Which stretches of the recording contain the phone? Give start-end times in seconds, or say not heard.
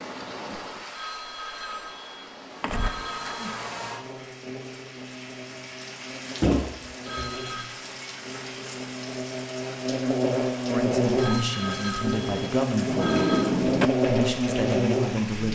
0.9-3.6, 7.0-7.7, 11.2-13.5.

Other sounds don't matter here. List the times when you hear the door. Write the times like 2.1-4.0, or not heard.
2.6-3.4, 6.4-7.4, 12.8-13.9.